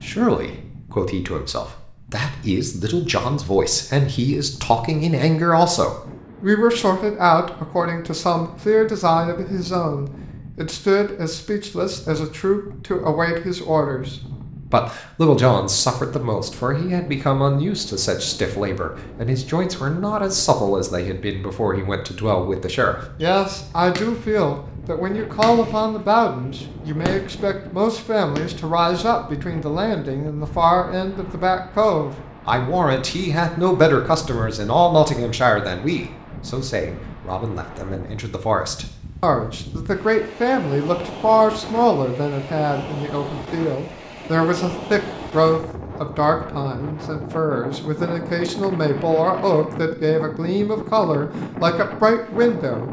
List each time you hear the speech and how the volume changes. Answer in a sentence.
The speech can be heard from 0.0 to 52.8 s, at a steady volume.